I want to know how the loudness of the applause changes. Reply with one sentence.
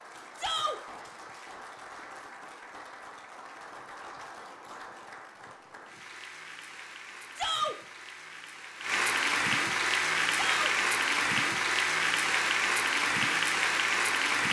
The loudness of the applause goes up.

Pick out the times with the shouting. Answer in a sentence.
The shouting can be heard from 0.3 to 0.8 s, from 7.3 to 7.8 s and from 10.3 to 10.8 s.